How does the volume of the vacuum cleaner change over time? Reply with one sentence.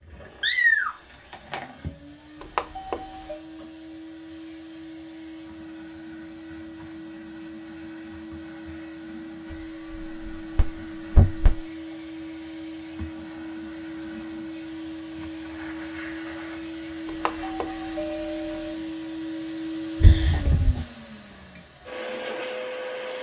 The loudness of the vacuum cleaner goes up.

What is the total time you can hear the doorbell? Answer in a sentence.
You can hear the doorbell for 3 seconds altogether.